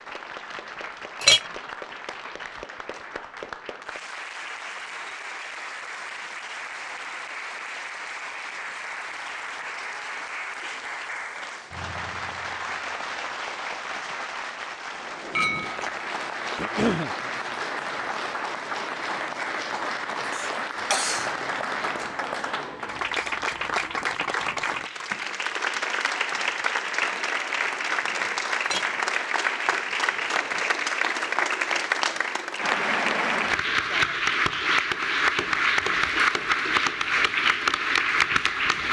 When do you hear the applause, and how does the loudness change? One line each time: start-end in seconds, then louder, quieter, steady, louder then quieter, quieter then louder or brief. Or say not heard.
0.0-38.8 louder.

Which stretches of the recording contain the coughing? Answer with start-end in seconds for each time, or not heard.
16.6-17.1, 20.3-21.3.